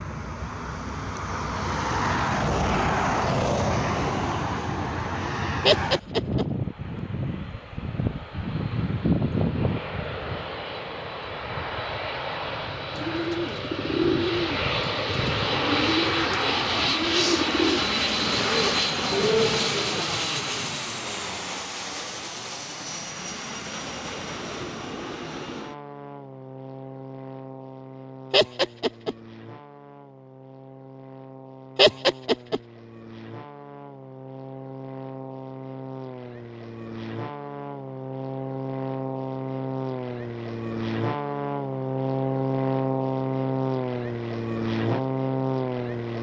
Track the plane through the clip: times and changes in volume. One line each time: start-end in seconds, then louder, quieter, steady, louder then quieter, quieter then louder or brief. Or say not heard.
0.0-46.1 quieter then louder.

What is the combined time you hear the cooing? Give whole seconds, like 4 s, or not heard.
7 s.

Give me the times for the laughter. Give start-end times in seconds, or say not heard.
5.7-6.5, 28.3-29.1, 31.8-32.6.